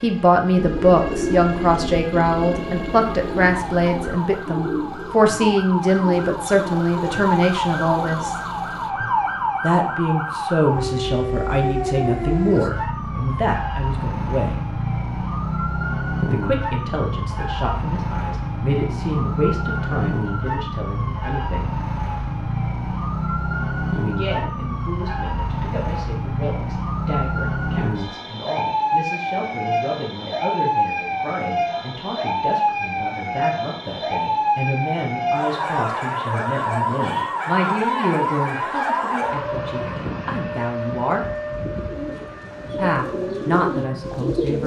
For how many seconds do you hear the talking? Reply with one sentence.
You can hear the talking for 38 seconds altogether.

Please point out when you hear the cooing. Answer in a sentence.
You can hear the cooing from 0.6 to 8.5 s and from 41.1 to 44.6 s.